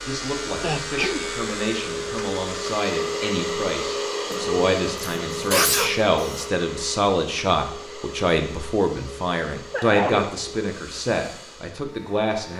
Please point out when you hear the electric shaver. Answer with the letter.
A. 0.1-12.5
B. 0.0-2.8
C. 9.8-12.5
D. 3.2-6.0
B.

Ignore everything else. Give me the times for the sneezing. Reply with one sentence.
The sneezing can be heard from 0.6 to 1.2 s, from 4.3 to 6.5 s and from 9.7 to 10.3 s.